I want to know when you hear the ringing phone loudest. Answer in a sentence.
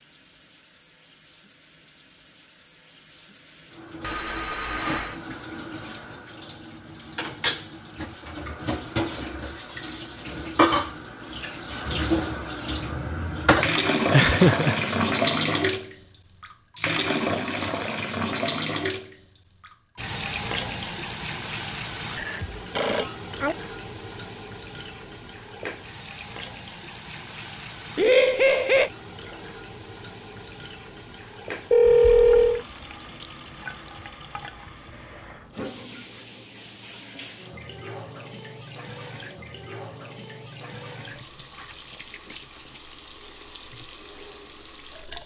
The loudest moment of the ringing phone is at 32 seconds.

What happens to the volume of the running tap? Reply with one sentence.
The loudness of the running tap goes up, then down.